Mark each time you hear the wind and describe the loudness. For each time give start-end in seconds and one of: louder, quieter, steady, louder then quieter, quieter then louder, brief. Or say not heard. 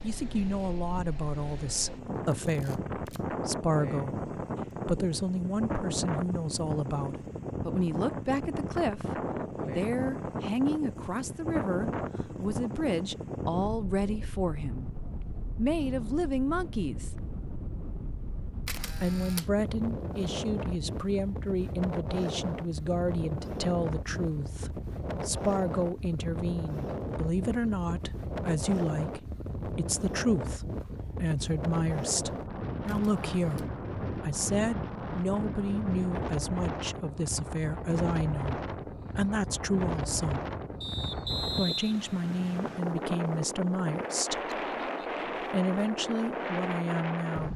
0.0-47.5 steady.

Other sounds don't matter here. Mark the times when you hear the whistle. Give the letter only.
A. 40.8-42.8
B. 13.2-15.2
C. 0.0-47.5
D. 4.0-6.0
A.